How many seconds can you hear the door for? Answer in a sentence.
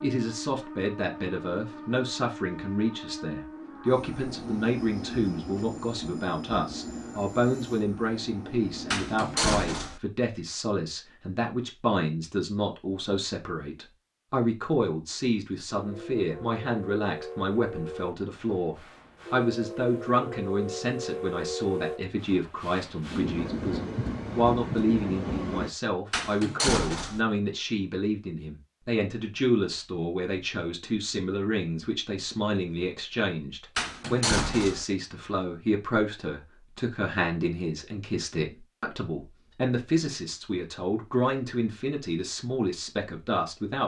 You can hear the door for 3 seconds altogether.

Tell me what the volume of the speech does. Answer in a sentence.
The loudness of the speech stays about the same.